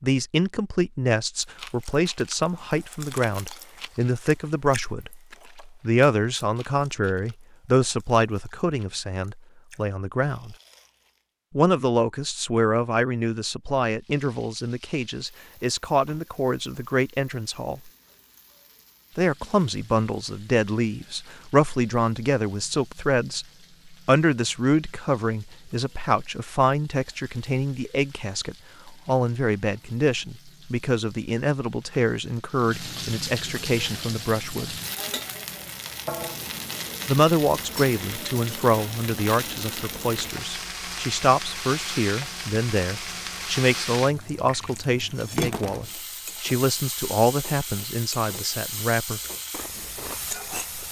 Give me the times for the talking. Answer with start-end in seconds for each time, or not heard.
0.0-10.6, 11.6-17.9, 19.1-34.8, 37.0-49.2.